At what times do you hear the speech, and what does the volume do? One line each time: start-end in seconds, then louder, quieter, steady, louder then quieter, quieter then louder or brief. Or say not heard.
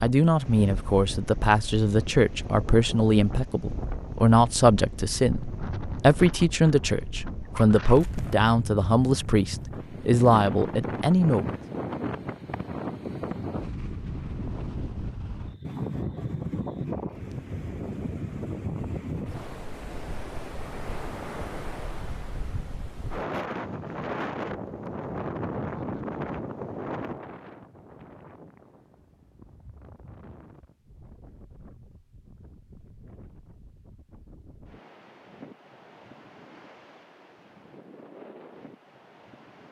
0.0-11.6 steady.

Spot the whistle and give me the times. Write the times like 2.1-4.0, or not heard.
not heard.